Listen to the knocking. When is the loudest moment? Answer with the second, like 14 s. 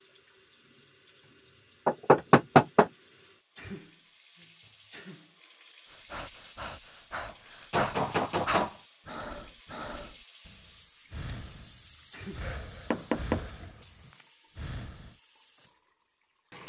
2 s.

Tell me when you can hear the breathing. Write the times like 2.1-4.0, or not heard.
5.9-15.2.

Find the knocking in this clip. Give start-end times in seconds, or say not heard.
1.9-2.9, 7.3-8.8, 12.9-13.7.